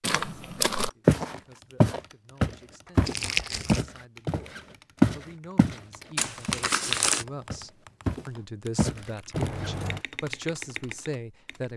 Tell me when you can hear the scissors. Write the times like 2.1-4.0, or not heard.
2.9-3.5, 9.3-10.1.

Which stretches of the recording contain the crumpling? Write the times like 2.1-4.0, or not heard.
3.0-3.9, 6.2-7.2.